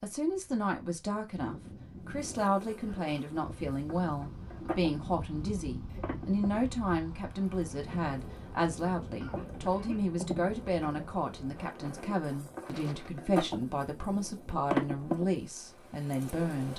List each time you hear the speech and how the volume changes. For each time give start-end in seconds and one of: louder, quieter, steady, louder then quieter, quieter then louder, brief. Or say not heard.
0.0-16.7 steady.